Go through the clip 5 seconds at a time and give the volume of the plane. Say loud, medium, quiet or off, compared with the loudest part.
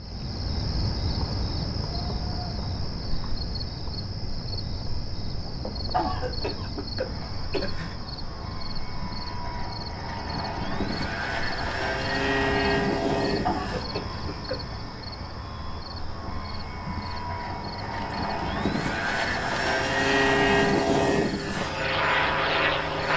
off, quiet, medium, medium, loud.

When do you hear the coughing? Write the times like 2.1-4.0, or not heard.
5.9-8.0, 13.4-14.8.